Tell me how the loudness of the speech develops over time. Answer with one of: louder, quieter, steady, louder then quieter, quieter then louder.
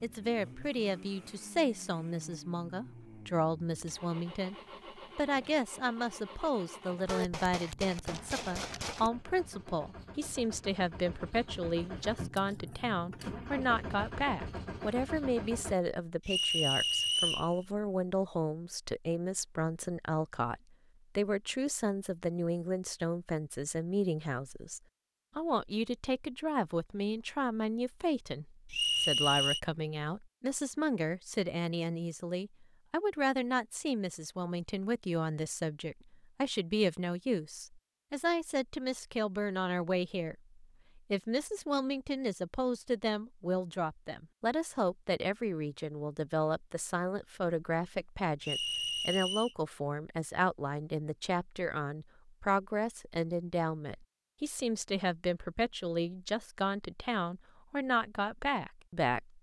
steady.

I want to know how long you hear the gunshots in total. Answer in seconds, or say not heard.
2 s.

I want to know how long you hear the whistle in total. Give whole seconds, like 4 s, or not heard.
3 s.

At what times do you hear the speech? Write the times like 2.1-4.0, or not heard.
0.0-59.3.